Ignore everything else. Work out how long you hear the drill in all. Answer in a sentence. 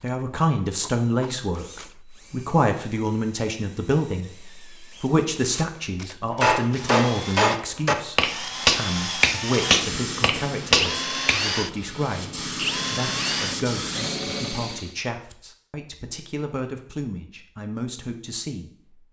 The drill can be heard for 15 seconds in total.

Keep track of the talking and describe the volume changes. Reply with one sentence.
The volume of the talking goes down.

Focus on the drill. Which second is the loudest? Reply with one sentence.
The volume of the drill peaks at 11 seconds.